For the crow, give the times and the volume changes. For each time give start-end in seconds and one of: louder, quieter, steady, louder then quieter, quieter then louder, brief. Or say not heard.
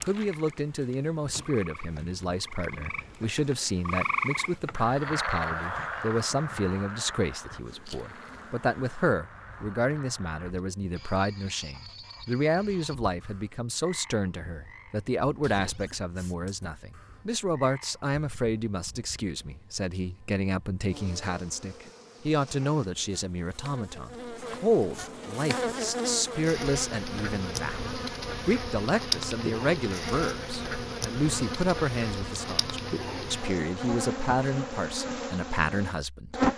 not heard.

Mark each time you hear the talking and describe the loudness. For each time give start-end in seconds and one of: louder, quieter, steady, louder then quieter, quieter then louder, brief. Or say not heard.
0.0-36.5 steady.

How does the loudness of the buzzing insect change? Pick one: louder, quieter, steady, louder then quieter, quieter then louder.
louder.